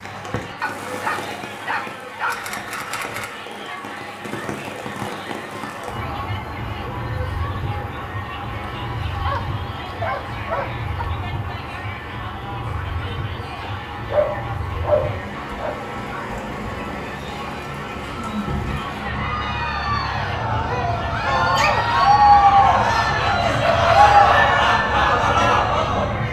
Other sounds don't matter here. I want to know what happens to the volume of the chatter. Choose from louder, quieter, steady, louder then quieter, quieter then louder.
louder.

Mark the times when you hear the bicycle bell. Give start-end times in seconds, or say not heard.
not heard.